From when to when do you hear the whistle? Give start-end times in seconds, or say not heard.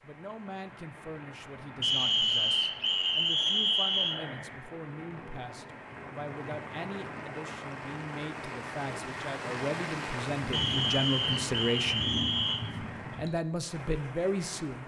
1.8-4.2, 10.5-12.7.